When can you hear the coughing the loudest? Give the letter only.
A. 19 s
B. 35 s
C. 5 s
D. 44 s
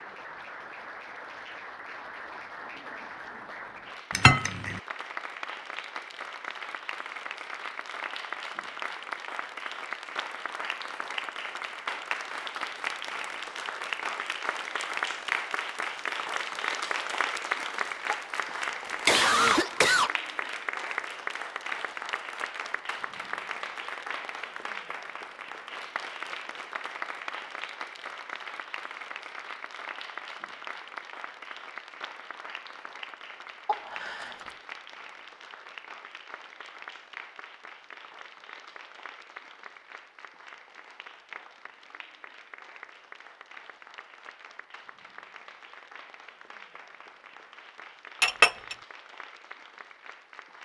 A.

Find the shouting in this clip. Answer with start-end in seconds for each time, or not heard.
not heard.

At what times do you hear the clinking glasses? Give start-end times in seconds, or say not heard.
4.1-4.8, 48.2-48.8.